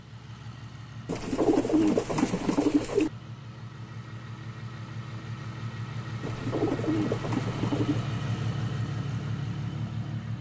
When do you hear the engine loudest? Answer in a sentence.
The loudest moment of the engine is at 8 seconds.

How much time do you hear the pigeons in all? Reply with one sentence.
The pigeons can be heard for 4 seconds in total.